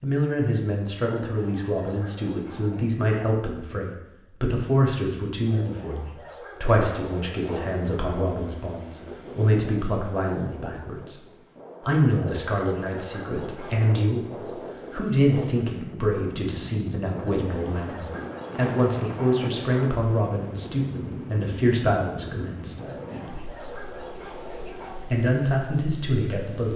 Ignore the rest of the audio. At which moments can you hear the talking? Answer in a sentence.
You can hear the talking from 0.0 to 11.2 s, from 11.8 to 22.8 s and from 25.1 to 26.7 s.